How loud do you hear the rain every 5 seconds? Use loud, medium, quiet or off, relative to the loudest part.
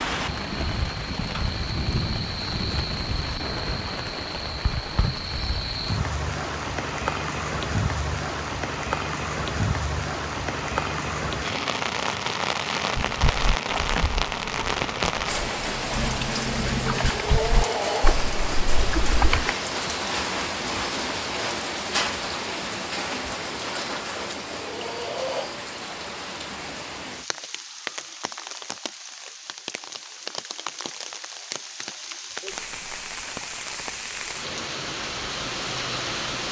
loud, loud, loud, loud, loud, medium, medium, loud.